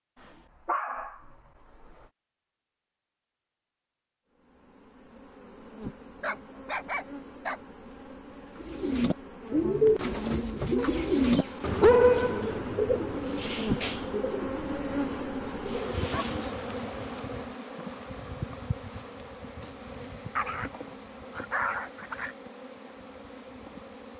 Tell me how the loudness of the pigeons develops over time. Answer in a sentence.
The loudness of the pigeons goes down.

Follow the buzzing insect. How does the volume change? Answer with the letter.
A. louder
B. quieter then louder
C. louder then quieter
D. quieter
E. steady
C.